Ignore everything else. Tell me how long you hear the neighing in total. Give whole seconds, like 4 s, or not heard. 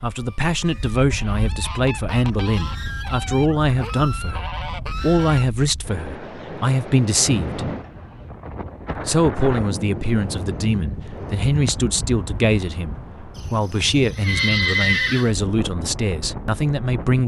2 s.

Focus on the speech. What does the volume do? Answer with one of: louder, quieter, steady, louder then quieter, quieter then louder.
steady.